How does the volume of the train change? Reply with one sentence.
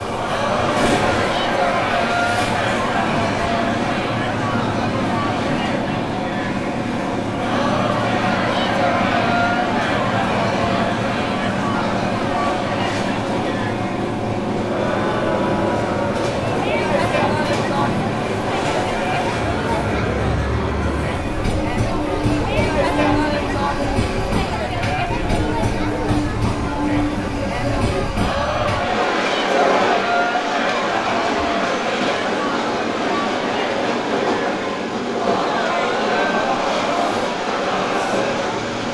The loudness of the train stays about the same.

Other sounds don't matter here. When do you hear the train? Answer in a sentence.
You can hear the train from 0.0 to 38.9 s.